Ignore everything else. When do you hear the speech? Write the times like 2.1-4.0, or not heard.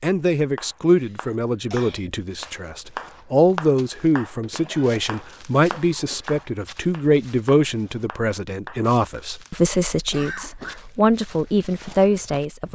0.0-12.7.